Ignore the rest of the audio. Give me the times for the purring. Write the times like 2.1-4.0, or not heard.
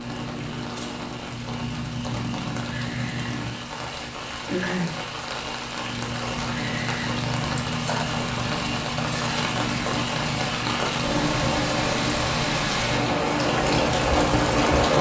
0.0-14.9.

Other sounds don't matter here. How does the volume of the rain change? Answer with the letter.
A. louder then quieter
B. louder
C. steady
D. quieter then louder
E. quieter
B.